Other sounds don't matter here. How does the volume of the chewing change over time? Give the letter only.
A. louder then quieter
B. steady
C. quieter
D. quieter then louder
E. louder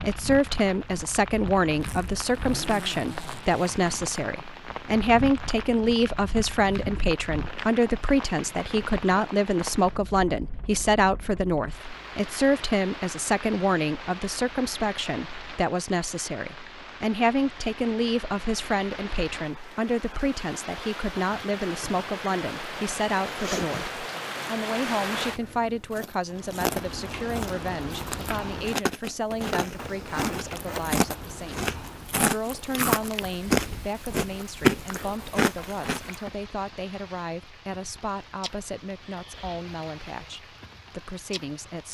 E.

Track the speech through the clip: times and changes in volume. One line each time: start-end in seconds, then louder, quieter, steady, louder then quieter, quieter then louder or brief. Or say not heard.
0.0-41.8 quieter.